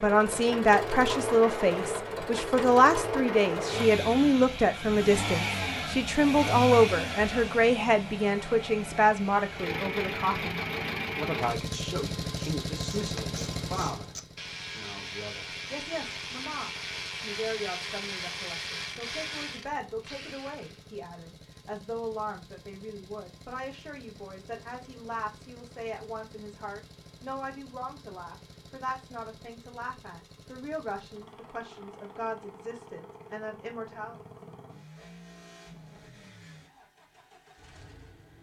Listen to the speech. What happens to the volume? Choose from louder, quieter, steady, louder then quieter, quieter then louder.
quieter.